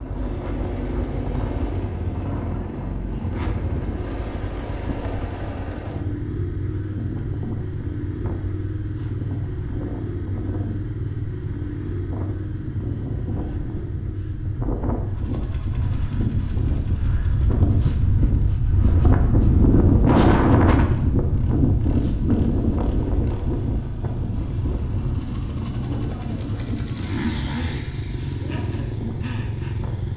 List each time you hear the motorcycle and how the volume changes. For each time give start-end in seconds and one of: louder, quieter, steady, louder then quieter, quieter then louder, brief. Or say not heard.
0.0-30.1 quieter then louder.